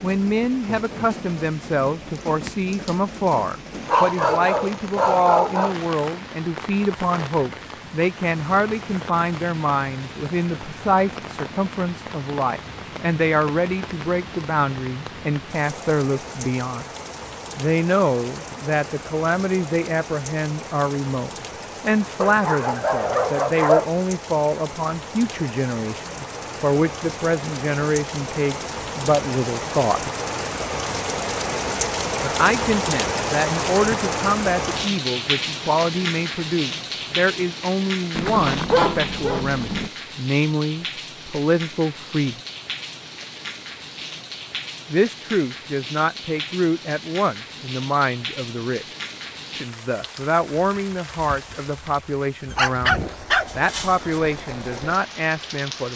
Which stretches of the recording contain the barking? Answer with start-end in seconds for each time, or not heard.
3.9-5.8, 22.2-23.9, 38.1-39.9, 52.5-54.2.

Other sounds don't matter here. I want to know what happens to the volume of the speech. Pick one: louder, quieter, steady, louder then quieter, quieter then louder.
steady.